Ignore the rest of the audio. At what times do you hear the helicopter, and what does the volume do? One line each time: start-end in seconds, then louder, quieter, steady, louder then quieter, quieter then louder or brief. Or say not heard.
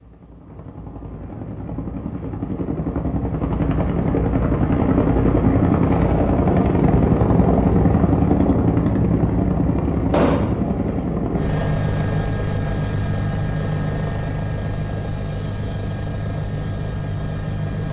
0.0-17.8 louder then quieter.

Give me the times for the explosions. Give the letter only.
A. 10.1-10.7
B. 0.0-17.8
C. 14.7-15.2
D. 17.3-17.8
A.